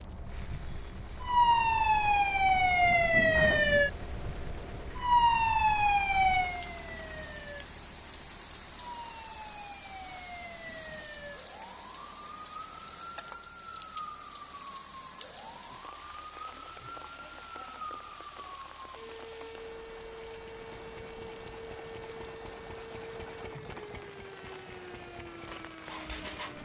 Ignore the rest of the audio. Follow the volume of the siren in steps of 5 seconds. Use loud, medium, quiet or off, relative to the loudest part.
loud, loud, quiet, quiet, quiet, quiet.